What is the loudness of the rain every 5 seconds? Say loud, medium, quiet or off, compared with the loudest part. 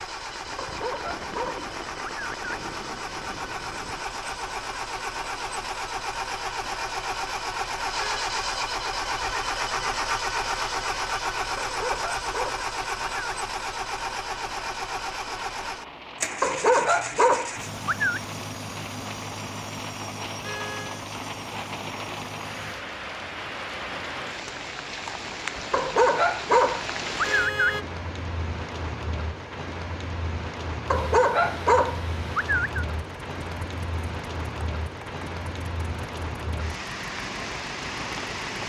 medium, medium, medium, medium, loud, loud, loud, loud.